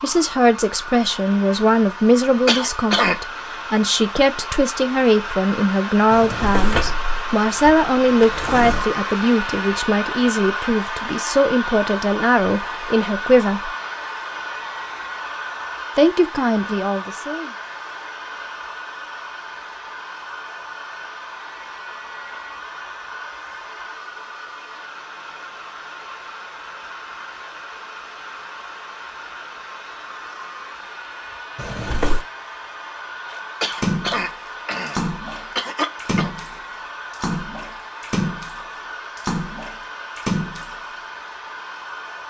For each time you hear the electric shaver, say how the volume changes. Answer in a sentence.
The electric shaver can't be heard in this clip.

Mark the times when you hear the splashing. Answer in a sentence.
The splashing can be heard from 33.3 to 40.8 s.